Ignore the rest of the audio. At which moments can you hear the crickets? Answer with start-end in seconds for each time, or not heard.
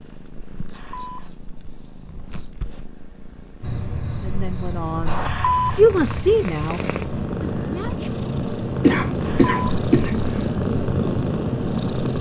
3.6-12.1.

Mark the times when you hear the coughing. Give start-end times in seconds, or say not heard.
8.8-10.2.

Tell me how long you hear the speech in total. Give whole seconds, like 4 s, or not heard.
4 s.